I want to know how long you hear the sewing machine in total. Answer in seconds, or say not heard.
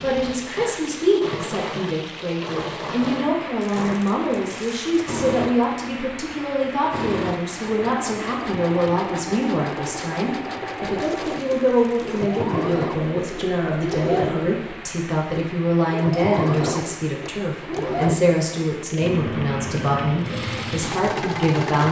22 s.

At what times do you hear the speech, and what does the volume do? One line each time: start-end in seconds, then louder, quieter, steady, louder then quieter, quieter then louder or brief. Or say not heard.
0.0-21.8 steady.